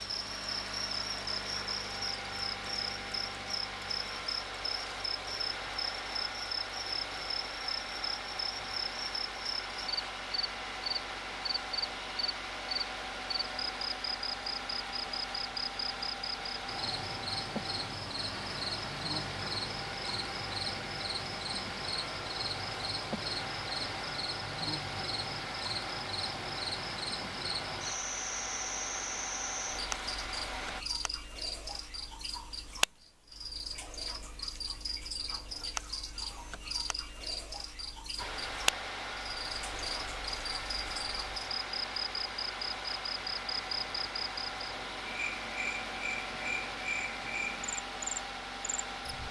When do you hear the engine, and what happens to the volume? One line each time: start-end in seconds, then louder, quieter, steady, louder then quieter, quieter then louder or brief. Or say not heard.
0.0-30.9 steady
38.1-49.2 steady.